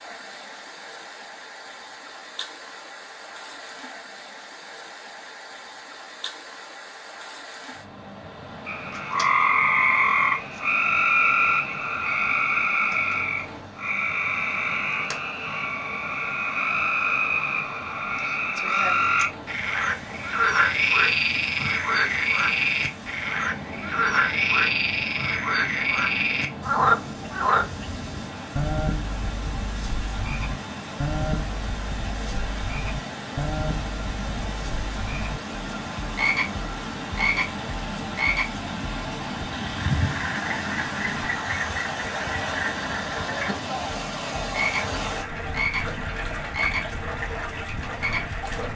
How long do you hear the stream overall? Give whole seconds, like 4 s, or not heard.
49 s.